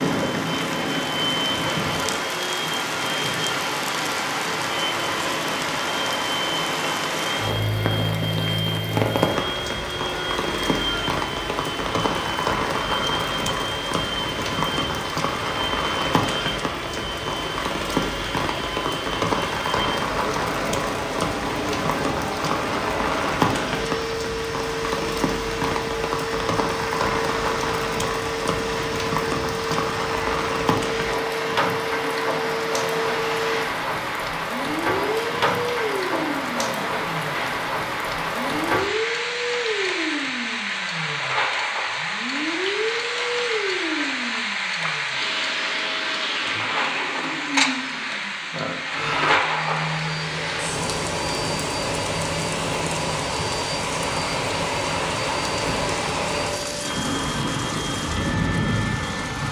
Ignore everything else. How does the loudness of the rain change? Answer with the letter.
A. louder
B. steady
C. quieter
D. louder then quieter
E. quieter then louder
B.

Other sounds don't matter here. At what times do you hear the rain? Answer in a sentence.
The rain can be heard from 0.0 to 59.4 s.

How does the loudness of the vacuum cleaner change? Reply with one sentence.
The volume of the vacuum cleaner stays about the same.